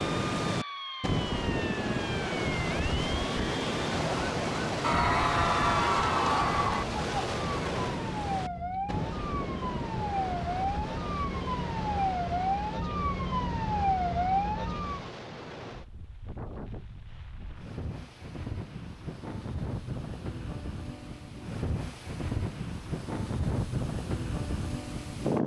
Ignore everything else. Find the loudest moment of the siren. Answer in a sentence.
The volume of the siren peaks at 14 seconds.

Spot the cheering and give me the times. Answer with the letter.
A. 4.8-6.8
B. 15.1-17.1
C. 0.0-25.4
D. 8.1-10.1
A.